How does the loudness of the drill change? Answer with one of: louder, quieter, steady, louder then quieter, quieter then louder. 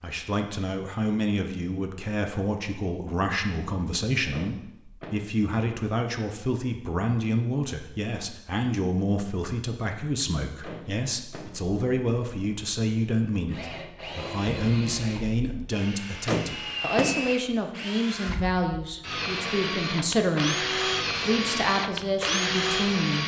louder.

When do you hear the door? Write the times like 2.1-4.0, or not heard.
4.3-5.2, 10.6-11.6, 16.2-17.2.